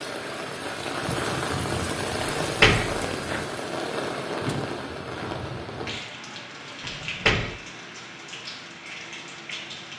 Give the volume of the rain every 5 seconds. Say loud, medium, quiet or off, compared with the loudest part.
loud, medium.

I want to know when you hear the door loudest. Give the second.
3 s.